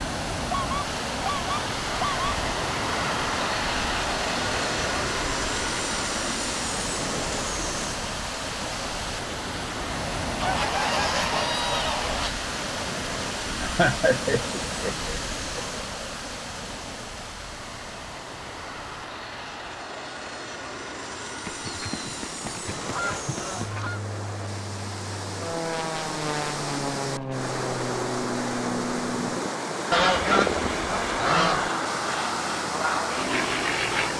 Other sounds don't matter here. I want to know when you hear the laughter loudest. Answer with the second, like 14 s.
14 s.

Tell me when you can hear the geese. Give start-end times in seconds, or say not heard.
0.5-2.4, 10.4-12.3, 21.4-24.0, 29.9-31.7.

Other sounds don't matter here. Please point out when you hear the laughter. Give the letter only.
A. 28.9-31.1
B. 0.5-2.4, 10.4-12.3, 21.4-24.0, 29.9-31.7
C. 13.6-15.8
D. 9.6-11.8
C.